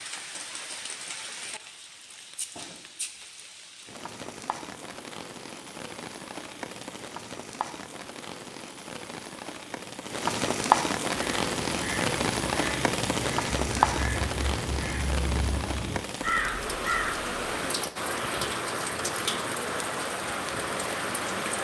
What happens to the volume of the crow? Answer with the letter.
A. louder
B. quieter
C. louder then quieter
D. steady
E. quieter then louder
A.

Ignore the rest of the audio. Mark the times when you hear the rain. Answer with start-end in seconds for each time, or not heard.
0.0-21.5.